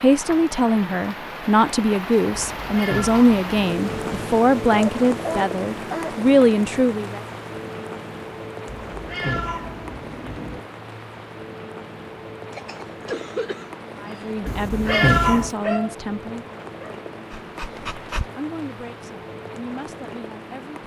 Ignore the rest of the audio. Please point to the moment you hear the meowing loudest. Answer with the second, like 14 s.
15 s.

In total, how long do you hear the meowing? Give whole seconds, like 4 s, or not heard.
5 s.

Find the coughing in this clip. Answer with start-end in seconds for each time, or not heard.
12.5-14.5.